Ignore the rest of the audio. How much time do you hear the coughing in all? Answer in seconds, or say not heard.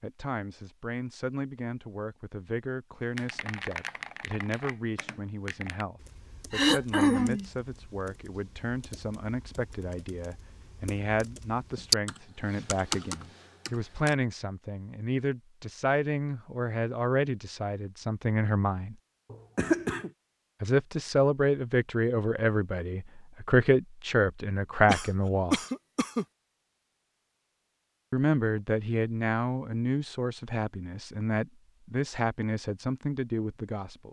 3 s.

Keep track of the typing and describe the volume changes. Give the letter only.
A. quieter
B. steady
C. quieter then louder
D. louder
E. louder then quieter
C.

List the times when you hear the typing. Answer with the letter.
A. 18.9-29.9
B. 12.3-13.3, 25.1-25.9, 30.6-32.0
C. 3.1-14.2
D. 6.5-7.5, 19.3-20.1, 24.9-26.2
C.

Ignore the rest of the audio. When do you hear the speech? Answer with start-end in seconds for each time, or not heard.
0.0-18.9, 20.6-25.6, 28.1-34.0.